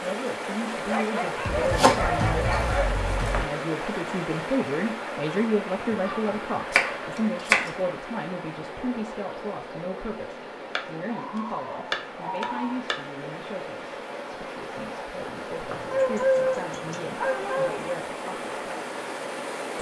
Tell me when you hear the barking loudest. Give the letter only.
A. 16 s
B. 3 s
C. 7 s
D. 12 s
A.